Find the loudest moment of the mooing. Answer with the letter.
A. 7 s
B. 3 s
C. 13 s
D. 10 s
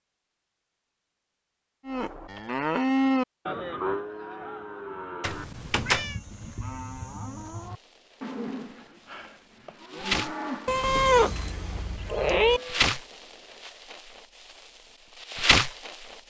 B.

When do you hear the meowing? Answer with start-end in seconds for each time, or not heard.
5.2-6.2, 10.7-12.6.